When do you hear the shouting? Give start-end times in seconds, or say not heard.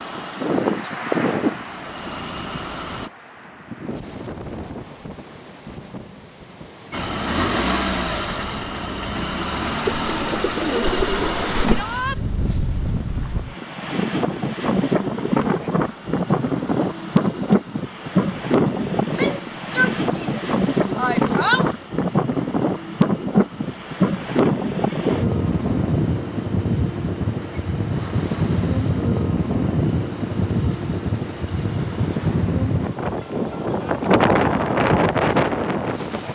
11.7-12.2, 19.0-21.7.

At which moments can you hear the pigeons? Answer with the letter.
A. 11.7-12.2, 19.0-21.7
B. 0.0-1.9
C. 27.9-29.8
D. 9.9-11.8
D.